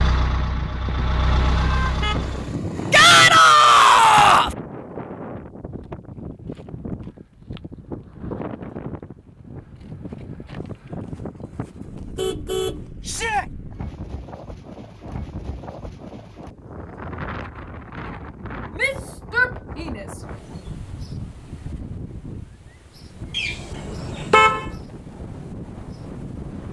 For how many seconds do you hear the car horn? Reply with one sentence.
The car horn can be heard for 6 seconds in total.